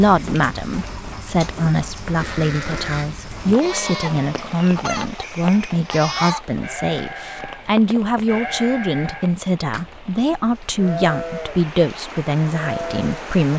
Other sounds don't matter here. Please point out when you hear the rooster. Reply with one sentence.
You can hear the rooster from 3.6 to 6.5 s.